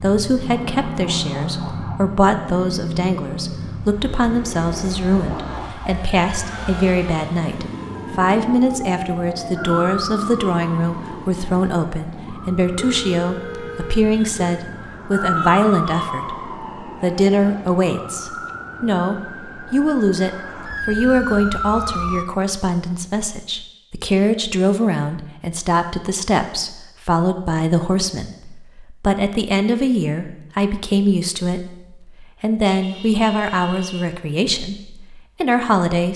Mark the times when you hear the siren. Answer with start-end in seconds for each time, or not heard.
0.7-2.0, 5.2-22.2.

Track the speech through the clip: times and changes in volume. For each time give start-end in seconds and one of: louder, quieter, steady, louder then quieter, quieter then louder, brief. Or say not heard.
0.0-36.1 steady.